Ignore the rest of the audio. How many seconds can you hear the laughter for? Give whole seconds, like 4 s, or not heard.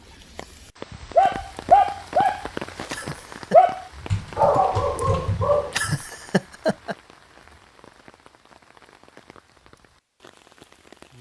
2 s.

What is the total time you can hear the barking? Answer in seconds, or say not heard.
5 s.